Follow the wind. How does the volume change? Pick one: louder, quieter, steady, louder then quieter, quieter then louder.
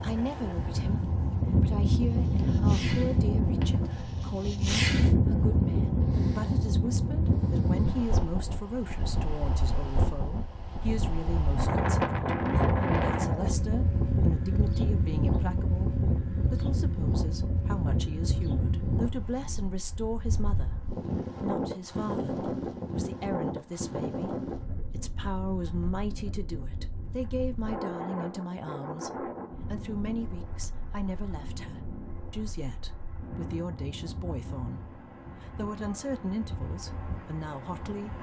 quieter.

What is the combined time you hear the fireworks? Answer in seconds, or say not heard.
3 s.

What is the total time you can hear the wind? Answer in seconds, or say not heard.
38 s.